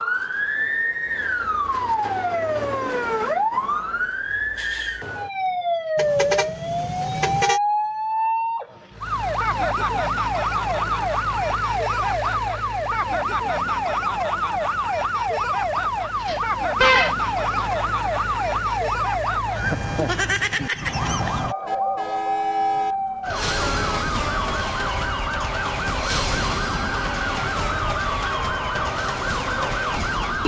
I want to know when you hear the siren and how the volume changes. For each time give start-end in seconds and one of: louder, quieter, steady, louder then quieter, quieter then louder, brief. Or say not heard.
0.0-30.4 steady.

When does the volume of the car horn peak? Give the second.
17 s.